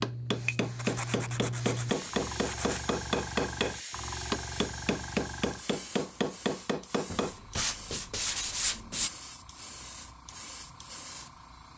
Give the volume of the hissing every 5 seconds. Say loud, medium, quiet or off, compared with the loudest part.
loud, medium, medium.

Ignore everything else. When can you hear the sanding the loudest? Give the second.
9 s.